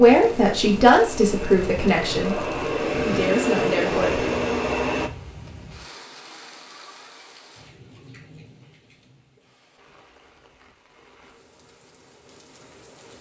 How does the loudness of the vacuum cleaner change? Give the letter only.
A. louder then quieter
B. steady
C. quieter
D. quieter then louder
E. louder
E.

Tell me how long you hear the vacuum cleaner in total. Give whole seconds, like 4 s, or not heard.
5 s.